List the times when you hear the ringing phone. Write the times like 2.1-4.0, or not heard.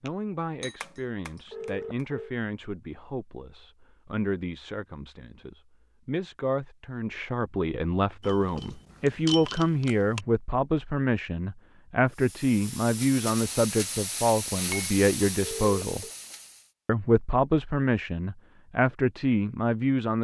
1.5-2.4, 15.4-16.1.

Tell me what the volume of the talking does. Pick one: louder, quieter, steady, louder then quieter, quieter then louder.
louder.